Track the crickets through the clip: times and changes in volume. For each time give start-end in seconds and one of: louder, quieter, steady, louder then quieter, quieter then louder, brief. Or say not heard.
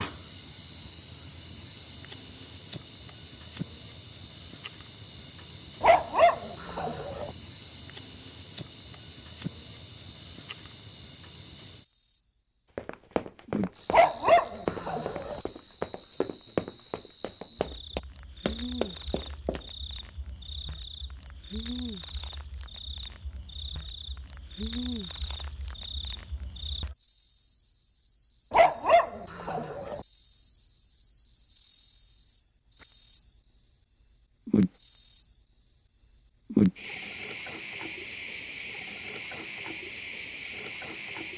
0.0-33.3 louder
34.5-41.3 quieter.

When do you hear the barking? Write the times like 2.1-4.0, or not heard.
5.8-7.3, 13.9-15.4, 28.5-30.0.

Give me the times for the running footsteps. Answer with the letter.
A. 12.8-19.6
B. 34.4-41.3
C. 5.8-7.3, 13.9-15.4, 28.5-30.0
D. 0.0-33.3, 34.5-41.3
A.